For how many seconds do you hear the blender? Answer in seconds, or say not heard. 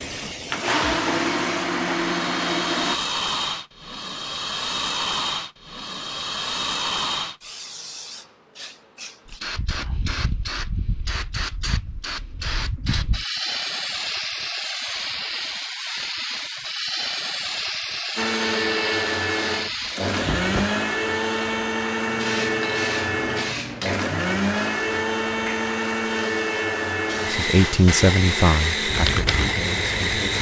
15 s.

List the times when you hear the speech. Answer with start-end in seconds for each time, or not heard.
27.2-30.3.